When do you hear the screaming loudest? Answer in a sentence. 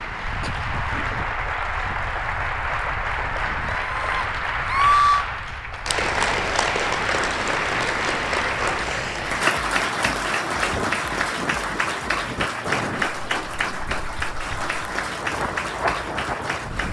The volume of the screaming peaks at 5 seconds.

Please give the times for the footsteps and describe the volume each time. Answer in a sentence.
You can't hear the footsteps here.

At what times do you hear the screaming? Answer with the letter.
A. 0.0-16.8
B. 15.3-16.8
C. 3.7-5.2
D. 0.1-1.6
C.